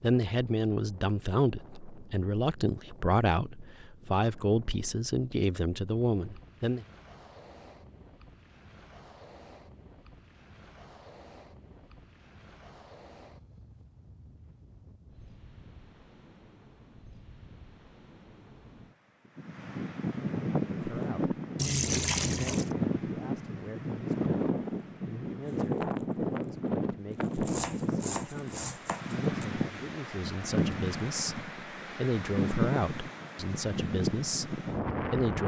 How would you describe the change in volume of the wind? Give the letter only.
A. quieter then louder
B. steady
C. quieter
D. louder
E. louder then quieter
D.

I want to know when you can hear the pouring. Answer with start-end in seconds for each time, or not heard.
21.6-22.7.